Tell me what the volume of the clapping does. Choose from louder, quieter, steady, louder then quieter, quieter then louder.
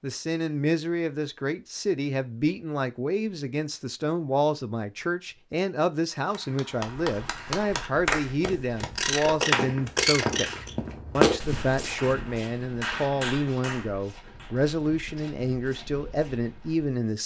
quieter then louder.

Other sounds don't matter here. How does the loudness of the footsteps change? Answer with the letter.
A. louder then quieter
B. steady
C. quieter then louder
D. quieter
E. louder
A.